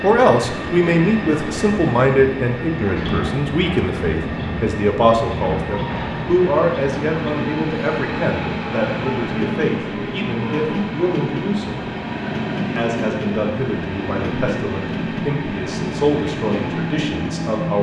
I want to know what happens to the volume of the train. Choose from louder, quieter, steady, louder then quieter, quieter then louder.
steady.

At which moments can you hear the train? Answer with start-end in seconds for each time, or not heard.
0.0-17.7.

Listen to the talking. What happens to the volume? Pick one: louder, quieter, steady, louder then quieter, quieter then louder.
quieter.